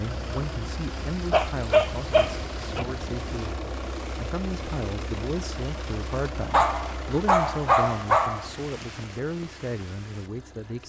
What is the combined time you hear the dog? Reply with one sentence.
The dog can be heard for 5 seconds in total.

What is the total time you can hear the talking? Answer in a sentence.
The talking can be heard for 11 seconds in total.